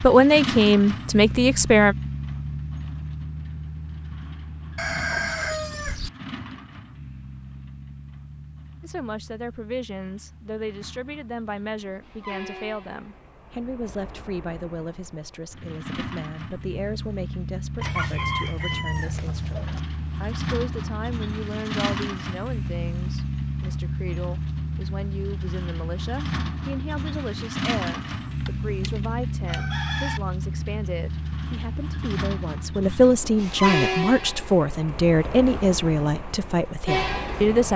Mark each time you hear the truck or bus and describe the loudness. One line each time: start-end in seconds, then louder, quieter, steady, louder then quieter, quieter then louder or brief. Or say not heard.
0.0-37.7 quieter then louder.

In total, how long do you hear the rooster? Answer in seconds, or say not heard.
5 s.